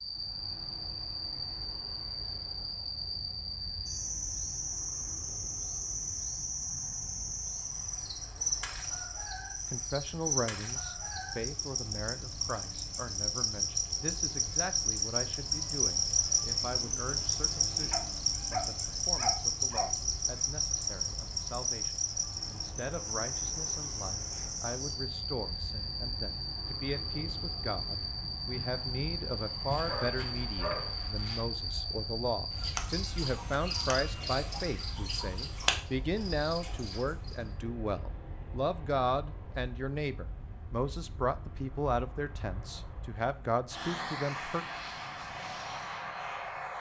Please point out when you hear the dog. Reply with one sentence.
The dog can be heard from 17.9 to 19.9 s and from 29.7 to 31.4 s.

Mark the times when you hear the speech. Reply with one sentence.
You can hear the speech from 9.7 to 44.6 s.